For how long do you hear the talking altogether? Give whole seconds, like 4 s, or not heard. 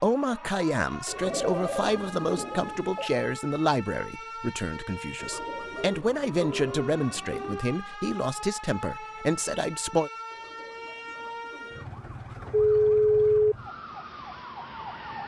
10 s.